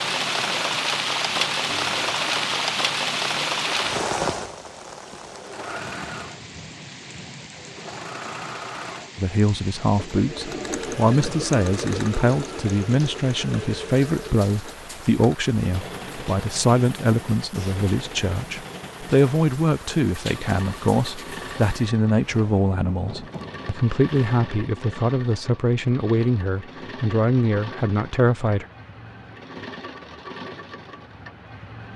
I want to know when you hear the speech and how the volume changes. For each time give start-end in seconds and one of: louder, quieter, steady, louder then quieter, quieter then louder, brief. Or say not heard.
9.2-28.6 steady.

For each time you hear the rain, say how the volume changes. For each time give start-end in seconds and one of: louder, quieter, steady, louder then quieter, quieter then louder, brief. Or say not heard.
0.0-24.7 quieter.